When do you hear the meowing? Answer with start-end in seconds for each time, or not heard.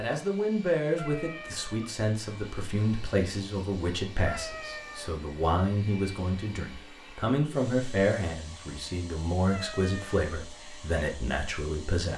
0.9-1.9, 4.2-5.2, 9.4-10.2.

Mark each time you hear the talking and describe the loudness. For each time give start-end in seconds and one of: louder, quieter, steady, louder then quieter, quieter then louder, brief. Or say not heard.
0.0-12.1 steady.